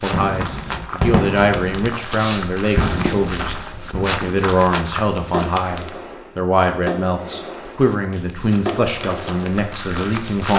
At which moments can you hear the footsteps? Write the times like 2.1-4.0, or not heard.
0.0-6.0, 7.5-10.5.